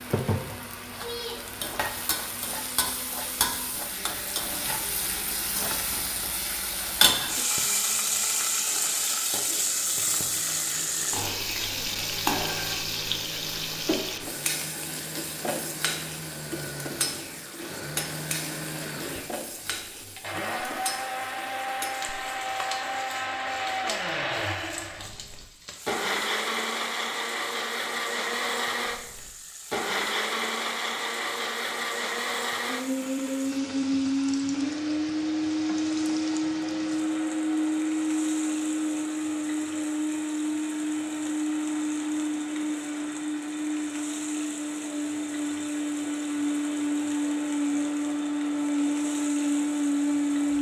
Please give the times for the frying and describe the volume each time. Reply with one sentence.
The frying can be heard from 0.0 to 50.5 s, getting quieter.